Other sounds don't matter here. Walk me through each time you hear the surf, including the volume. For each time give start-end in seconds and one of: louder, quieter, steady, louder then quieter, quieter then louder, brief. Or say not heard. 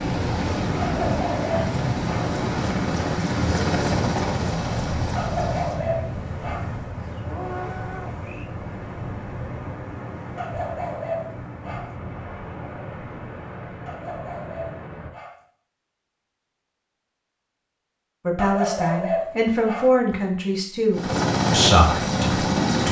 0.0-15.1 quieter.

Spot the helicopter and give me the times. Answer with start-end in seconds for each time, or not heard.
0.2-5.8, 20.9-22.8.